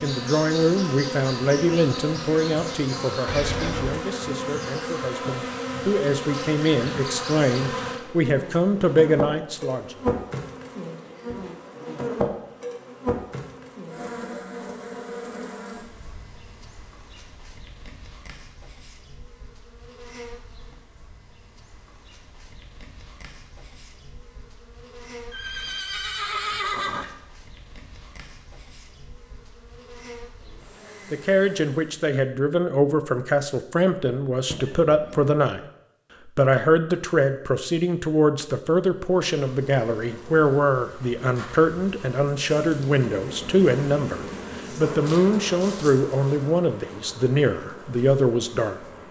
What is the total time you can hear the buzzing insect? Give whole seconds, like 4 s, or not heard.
42 s.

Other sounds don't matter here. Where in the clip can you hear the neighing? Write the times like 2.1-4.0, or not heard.
3.2-4.0, 25.3-27.1, 34.5-35.3.